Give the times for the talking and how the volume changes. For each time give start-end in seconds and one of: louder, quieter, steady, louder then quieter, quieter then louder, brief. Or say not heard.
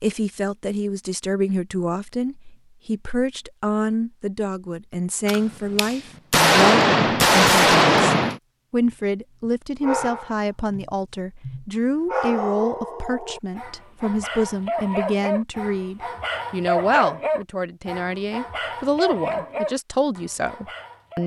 0.0-21.2 steady.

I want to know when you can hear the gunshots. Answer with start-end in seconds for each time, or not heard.
5.2-8.4.